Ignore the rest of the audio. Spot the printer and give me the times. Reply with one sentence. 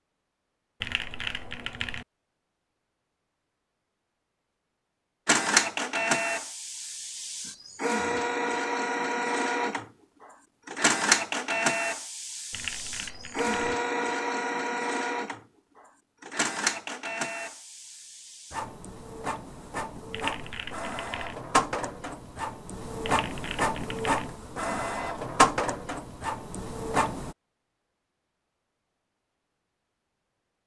The printer can be heard from 5.2 to 27.4 s.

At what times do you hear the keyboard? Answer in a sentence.
The keyboard can be heard from 0.8 to 2.0 s, from 12.5 to 13.8 s, from 20.1 to 21.4 s and from 23.0 to 24.3 s.